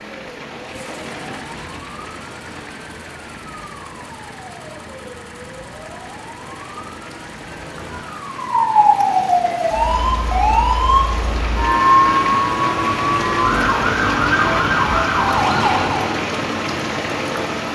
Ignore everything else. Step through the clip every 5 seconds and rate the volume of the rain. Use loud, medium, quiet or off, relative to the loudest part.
quiet, quiet, loud, loud.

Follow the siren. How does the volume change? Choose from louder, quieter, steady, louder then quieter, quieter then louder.
louder.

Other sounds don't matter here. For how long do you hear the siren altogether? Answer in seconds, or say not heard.
16 s.